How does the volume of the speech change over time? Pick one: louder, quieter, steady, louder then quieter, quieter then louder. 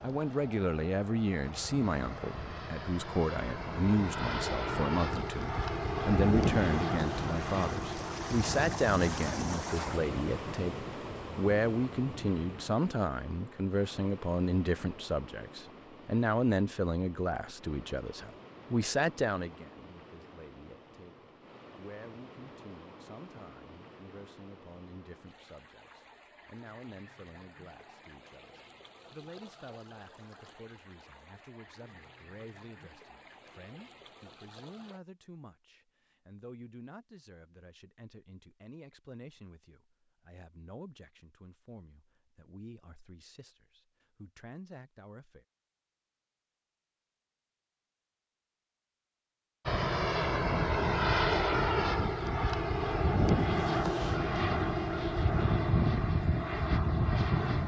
quieter.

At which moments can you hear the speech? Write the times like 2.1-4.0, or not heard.
0.0-45.5.